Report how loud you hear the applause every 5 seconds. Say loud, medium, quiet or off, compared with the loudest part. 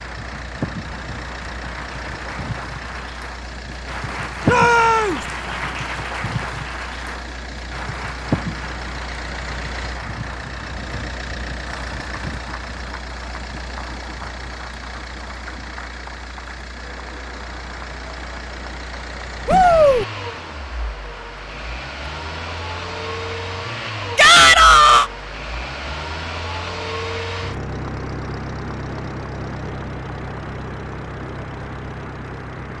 loud, loud, medium, medium, medium, medium, medium.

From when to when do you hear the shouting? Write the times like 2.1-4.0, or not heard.
4.5-5.2, 19.4-20.1, 24.1-25.1.